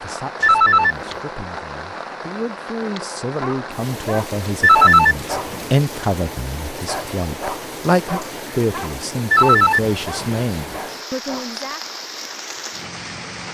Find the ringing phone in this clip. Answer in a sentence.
You can hear the ringing phone from 0.4 to 0.9 s, from 4.6 to 5.7 s and from 9.3 to 10.2 s.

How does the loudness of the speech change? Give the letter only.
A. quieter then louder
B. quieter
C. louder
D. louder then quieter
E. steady
C.